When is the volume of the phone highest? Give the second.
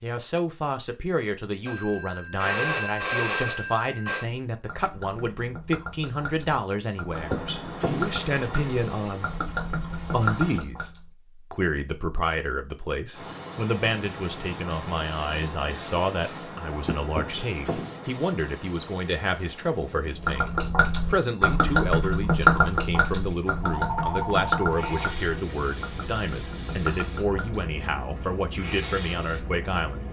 3 s.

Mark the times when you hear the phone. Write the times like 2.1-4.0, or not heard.
1.6-4.2, 23.6-25.1.